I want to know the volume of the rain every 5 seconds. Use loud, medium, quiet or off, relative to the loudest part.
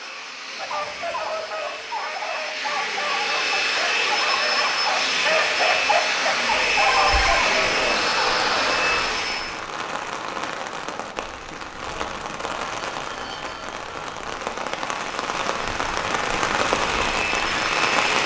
off, medium, medium, loud.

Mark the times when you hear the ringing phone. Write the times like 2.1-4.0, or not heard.
6.5-7.5.